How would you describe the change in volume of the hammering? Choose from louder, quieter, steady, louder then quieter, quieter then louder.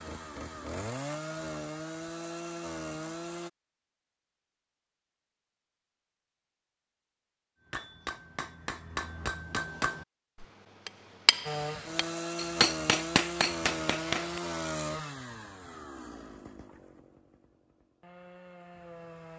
louder.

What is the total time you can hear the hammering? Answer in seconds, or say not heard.
7 s.